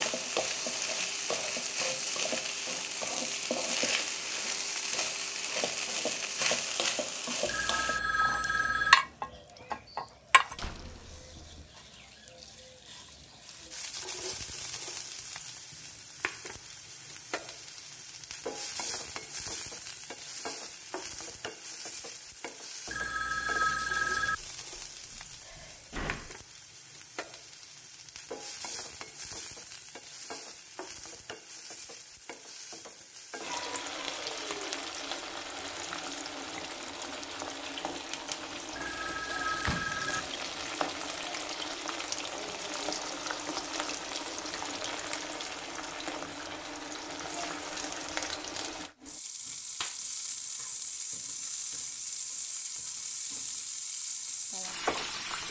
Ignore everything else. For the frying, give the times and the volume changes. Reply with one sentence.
The frying can be heard from 0.0 to 55.4 s, getting quieter then louder.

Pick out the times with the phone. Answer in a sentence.
The phone can be heard from 7.5 to 8.9 s, from 22.9 to 24.4 s and from 38.7 to 40.2 s.